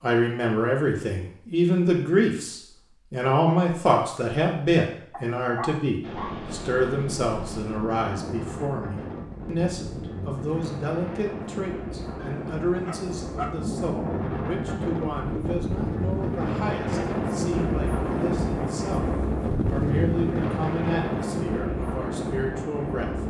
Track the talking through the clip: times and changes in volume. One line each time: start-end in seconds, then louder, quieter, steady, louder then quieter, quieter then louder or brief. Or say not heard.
0.0-23.1 quieter.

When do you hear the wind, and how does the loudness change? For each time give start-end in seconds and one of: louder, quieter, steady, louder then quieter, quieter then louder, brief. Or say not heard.
6.0-23.2 louder.